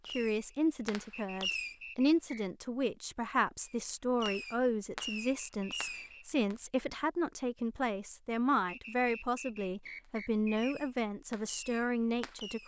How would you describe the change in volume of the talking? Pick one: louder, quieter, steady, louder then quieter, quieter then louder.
steady.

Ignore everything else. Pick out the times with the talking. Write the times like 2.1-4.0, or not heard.
0.1-12.6.